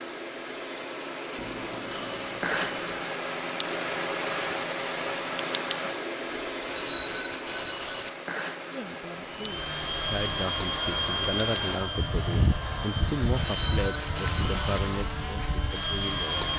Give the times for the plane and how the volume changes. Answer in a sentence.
The plane can be heard from 9.2 to 16.5 s, at a steady volume.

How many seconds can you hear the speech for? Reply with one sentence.
You can hear the speech for 8 seconds altogether.